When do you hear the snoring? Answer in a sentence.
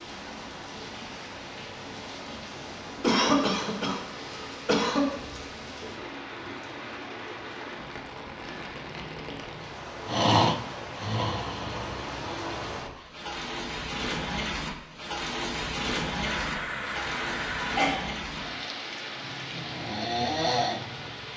The snoring can be heard from 10.1 to 13.1 s and from 19.1 to 21.3 s.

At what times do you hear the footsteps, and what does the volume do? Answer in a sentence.
The footsteps can't be heard in this clip.